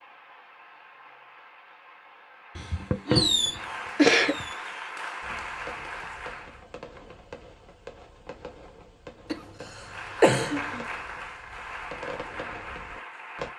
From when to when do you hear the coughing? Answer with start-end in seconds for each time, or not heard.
2.5-4.5, 9.3-10.8.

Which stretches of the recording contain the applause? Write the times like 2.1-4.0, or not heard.
0.0-6.7, 9.8-13.5.